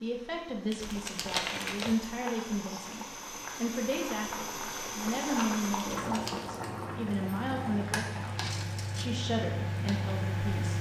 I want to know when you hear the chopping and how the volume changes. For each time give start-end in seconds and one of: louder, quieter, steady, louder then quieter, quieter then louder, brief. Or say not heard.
not heard.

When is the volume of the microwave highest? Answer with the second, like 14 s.
10 s.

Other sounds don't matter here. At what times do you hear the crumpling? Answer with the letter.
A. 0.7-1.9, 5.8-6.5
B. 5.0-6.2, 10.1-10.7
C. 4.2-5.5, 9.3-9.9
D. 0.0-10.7
A.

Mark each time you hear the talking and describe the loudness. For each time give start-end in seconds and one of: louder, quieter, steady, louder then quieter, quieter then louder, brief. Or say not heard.
0.0-10.7 steady.